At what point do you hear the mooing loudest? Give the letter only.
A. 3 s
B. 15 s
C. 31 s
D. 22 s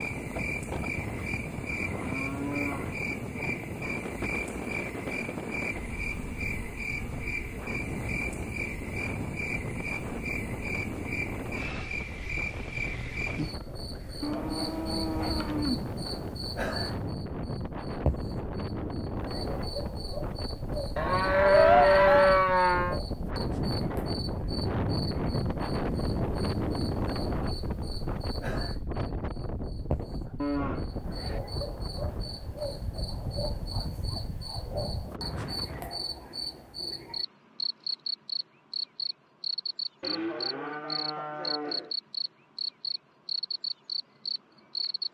D.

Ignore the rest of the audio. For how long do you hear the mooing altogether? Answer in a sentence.
The mooing can be heard for 9 seconds in total.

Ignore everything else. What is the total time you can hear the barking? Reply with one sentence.
The barking can't be heard in this clip.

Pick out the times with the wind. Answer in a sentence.
The wind can be heard from 0.0 to 36.0 s.